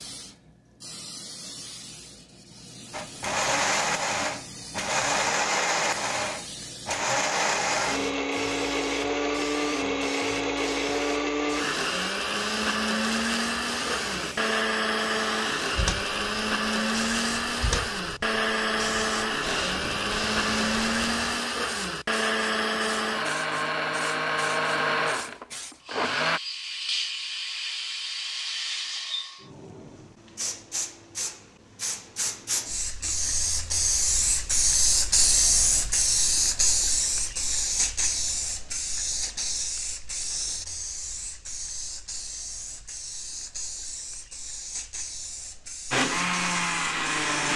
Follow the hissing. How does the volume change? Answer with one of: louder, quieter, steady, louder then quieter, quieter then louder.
louder then quieter.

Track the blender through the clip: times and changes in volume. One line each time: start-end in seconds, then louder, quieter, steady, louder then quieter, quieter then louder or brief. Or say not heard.
2.9-26.4 steady
45.9-47.5 brief.